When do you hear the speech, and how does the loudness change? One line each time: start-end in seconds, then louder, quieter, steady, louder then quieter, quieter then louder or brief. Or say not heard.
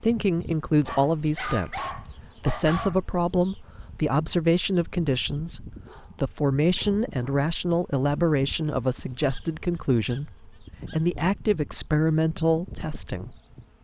0.0-13.3 steady.